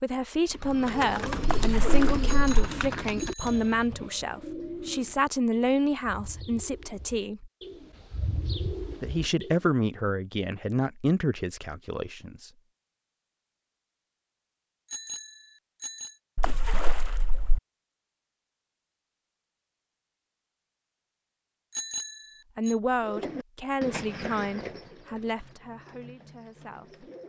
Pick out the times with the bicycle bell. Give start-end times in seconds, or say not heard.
2.2-3.9, 14.8-16.1, 21.7-22.8.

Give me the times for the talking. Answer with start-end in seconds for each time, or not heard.
0.0-7.5, 9.0-12.5, 22.6-27.1.